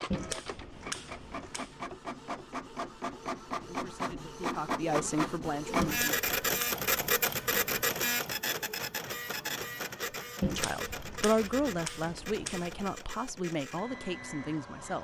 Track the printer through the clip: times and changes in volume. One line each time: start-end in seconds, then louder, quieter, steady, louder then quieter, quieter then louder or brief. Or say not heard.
0.0-14.9 louder then quieter.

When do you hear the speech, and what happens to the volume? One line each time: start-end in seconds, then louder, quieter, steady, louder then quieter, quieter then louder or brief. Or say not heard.
3.6-6.2 brief
10.6-14.9 quieter.